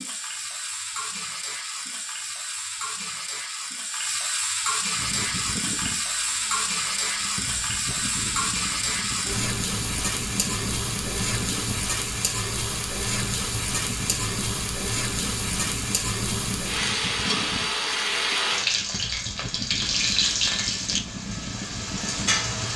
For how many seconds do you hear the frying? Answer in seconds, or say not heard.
23 s.